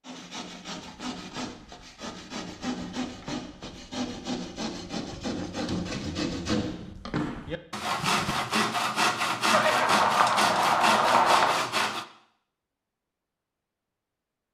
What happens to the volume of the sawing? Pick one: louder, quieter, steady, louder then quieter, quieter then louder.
louder.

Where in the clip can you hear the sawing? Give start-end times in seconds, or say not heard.
0.0-12.1.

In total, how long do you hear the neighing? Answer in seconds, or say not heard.
2 s.